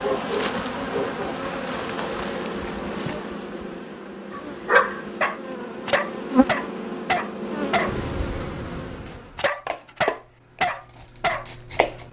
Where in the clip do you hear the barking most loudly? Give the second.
5 s.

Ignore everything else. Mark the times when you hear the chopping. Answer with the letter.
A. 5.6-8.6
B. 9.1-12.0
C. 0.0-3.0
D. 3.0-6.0
B.